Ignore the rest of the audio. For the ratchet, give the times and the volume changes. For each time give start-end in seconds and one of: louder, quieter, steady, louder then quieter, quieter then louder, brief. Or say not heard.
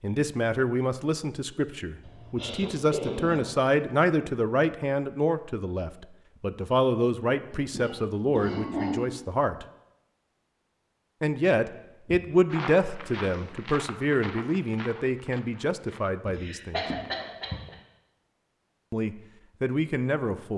not heard.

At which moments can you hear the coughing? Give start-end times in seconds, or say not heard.
2.0-3.5, 7.5-9.0, 16.3-17.8.